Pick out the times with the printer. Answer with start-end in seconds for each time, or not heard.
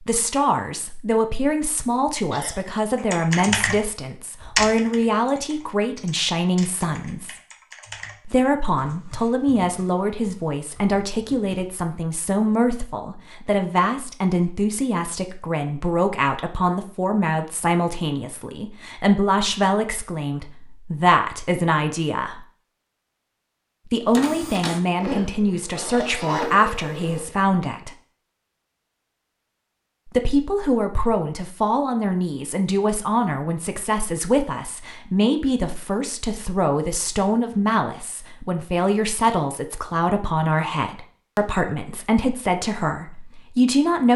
24.1-27.2.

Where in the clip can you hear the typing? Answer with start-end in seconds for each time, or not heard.
3.0-11.8.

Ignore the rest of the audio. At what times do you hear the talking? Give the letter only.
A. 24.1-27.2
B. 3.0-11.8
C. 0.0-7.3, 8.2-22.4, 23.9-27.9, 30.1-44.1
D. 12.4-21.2
C.